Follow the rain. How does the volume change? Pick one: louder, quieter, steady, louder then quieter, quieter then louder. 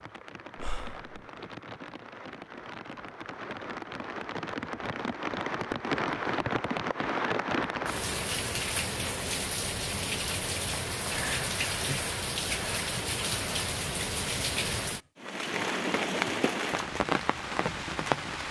louder.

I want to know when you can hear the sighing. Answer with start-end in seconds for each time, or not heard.
0.6-1.1, 11.1-12.0.